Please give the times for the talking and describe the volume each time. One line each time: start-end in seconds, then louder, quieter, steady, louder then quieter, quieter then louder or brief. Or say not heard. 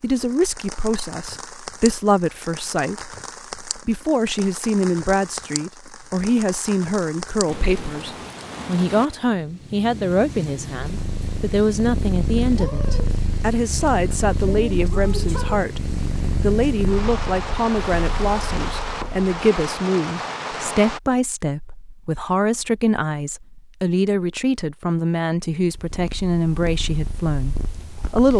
0.0-28.3 steady.